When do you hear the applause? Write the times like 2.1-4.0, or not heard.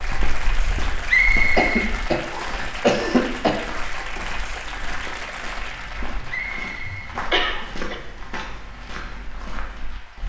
0.0-10.2.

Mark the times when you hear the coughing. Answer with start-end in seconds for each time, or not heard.
1.6-3.5, 7.3-8.0.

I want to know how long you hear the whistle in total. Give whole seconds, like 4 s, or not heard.
3 s.